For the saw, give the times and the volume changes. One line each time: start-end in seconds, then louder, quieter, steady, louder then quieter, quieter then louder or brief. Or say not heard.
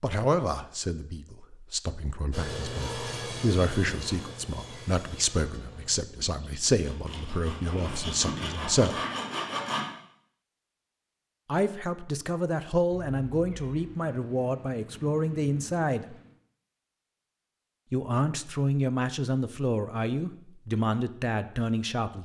2.3-9.8 quieter then louder.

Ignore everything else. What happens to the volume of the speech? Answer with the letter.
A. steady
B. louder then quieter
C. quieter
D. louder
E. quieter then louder
A.